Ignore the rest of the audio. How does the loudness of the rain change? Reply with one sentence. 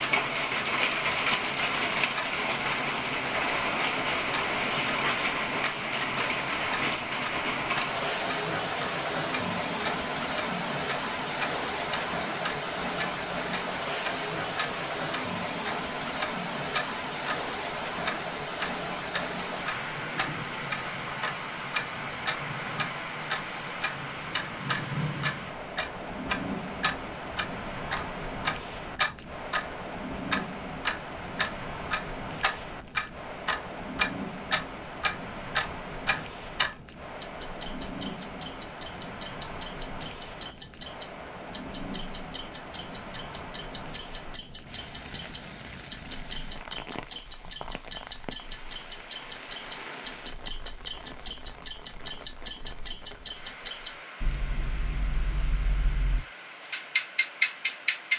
The loudness of the rain goes down.